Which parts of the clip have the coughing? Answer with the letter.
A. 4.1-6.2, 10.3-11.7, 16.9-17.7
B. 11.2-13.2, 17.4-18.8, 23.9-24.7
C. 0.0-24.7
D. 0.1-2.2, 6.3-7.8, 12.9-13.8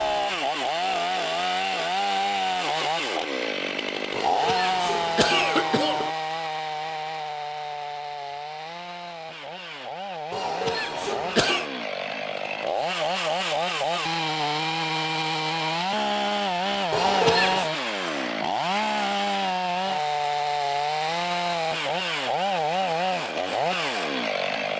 A.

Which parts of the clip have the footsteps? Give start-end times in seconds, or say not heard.
not heard.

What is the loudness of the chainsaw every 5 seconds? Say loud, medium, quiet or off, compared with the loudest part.
loud, medium, loud, loud, loud.